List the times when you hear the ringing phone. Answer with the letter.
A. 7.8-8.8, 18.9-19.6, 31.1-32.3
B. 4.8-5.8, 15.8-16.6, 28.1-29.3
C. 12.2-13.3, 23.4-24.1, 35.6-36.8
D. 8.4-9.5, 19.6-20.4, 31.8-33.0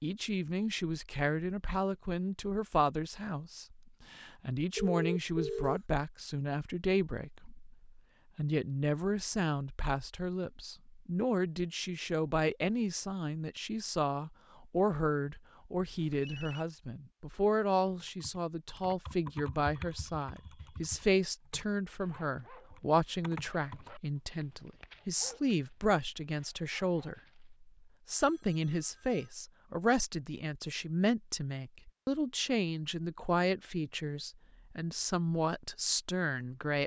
B.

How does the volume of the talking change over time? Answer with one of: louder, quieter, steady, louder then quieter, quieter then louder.
steady.